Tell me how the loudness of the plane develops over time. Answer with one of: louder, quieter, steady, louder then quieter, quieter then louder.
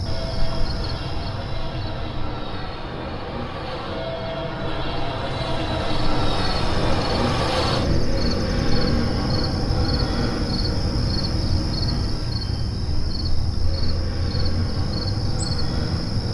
louder then quieter.